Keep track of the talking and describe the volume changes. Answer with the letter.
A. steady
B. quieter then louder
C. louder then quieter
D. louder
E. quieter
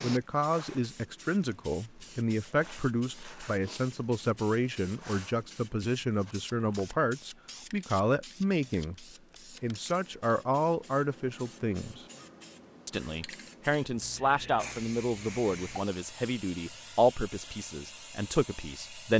A.